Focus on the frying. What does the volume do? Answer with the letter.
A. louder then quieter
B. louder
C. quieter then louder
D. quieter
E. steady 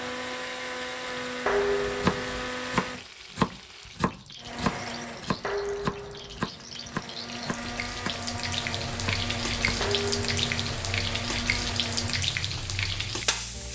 B.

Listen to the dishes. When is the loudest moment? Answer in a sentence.
The loudest moment of the dishes is at 2 seconds.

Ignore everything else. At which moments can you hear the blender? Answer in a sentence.
You can hear the blender from 0.0 to 3.1 s and from 4.3 to 12.3 s.